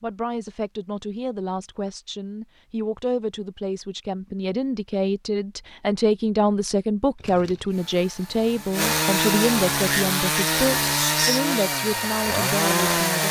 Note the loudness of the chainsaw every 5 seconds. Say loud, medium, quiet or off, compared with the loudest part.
off, loud, loud.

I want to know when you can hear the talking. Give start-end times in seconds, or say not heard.
0.0-13.2.